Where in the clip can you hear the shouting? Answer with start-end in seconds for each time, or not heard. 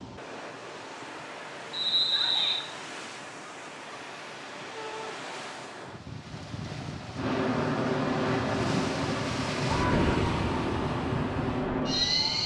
2.0-2.6, 4.8-5.2, 9.6-10.7.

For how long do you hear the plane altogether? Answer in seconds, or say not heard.
5 s.